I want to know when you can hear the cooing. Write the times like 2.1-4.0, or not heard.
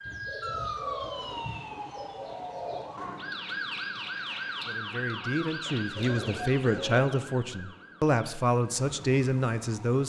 0.0-2.9, 6.0-7.0.